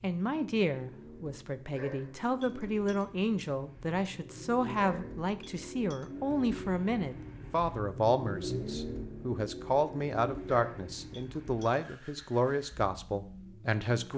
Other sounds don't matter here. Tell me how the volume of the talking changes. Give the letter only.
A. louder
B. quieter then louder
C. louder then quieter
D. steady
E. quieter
D.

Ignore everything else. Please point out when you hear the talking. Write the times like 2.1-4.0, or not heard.
0.0-14.1.